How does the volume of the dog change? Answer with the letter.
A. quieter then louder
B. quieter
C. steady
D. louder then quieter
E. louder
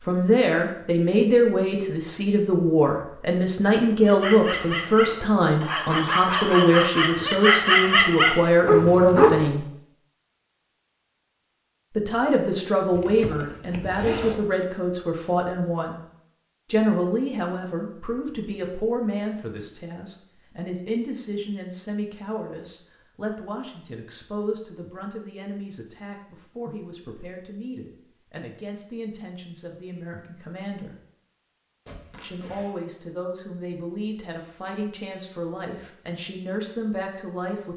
E.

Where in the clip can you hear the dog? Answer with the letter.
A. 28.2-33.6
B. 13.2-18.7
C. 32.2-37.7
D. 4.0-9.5
D.